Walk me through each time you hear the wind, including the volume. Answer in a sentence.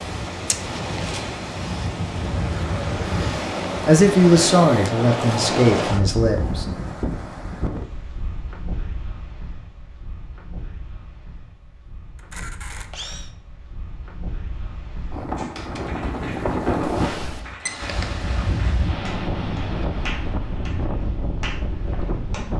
The wind can be heard from 0.0 to 22.5 s, getting quieter then louder.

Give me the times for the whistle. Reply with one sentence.
The whistle can't be heard in this clip.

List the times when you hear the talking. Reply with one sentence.
The talking can be heard from 3.9 to 6.7 s.